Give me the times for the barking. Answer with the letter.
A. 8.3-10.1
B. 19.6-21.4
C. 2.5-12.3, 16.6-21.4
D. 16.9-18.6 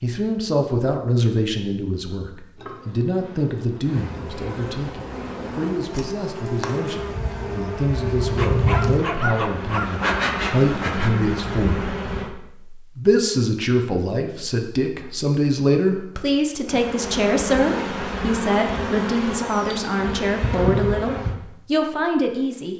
A.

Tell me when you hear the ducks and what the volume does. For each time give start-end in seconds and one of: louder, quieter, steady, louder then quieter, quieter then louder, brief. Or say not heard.
not heard.